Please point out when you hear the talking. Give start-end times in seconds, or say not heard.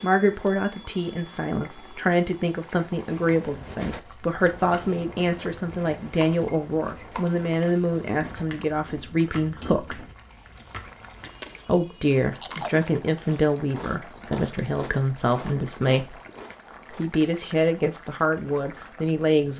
0.0-10.1, 11.7-16.1, 16.9-19.5.